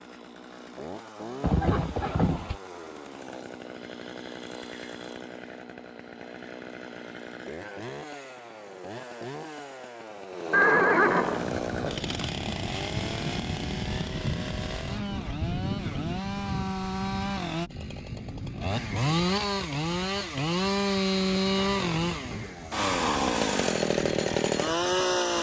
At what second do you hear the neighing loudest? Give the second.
11 s.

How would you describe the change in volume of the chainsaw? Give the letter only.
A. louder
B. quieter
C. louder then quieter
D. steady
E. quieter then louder
A.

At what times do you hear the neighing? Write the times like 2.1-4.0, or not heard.
1.4-2.5, 10.5-11.4, 21.6-22.6.